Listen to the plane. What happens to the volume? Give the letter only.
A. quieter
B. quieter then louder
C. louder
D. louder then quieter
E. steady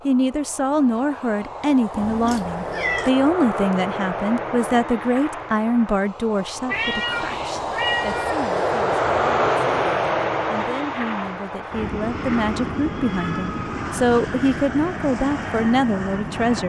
D.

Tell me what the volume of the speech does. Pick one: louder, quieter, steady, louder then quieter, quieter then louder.
quieter then louder.